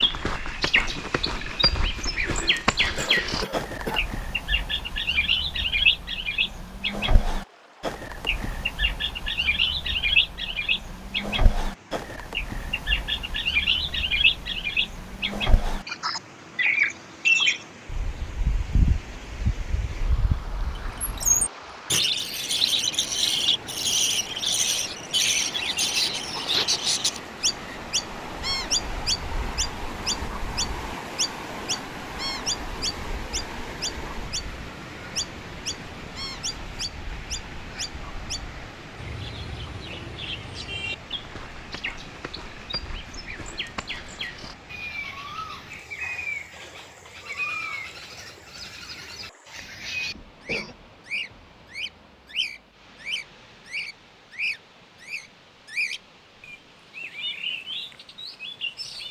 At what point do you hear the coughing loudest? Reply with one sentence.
The volume of the coughing peaks at 4 seconds.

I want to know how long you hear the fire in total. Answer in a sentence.
You can't hear the fire here.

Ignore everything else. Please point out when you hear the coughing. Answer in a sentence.
You can hear the coughing from 3.0 to 4.0 s, from 26.3 to 26.8 s and from 50.1 to 50.8 s.